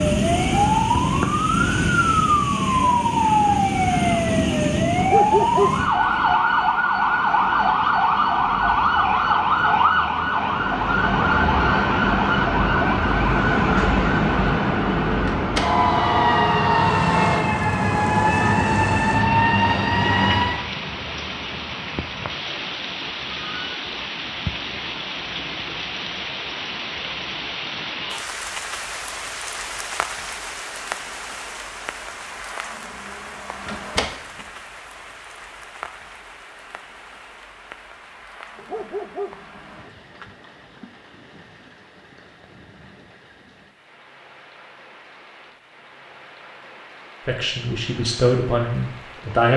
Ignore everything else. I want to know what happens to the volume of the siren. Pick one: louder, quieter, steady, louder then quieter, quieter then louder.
steady.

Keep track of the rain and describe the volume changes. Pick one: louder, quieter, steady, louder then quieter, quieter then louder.
quieter.